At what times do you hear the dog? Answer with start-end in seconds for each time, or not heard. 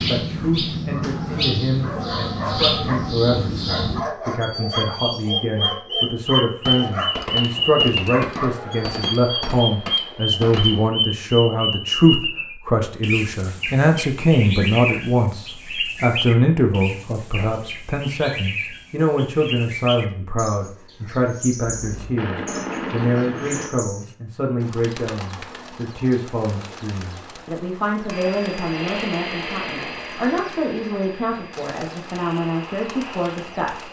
0.9-9.6.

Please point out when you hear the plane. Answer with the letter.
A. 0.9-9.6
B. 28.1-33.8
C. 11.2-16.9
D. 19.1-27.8
B.